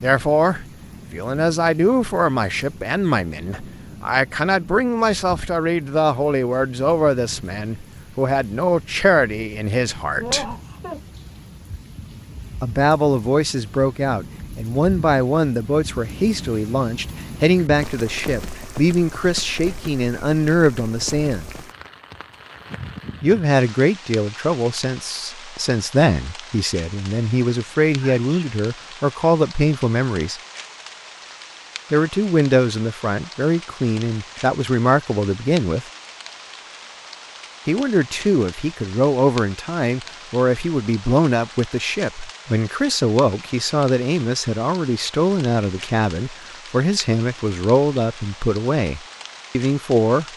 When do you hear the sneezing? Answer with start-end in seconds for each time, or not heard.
10.2-11.0, 28.0-28.6.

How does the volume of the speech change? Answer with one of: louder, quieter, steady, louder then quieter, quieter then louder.
steady.